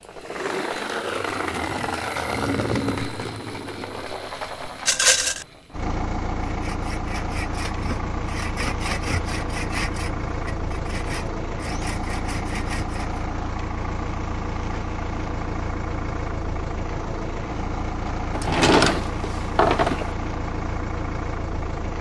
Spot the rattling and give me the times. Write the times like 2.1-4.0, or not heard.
4.8-5.5.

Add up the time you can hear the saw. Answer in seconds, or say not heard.
7 s.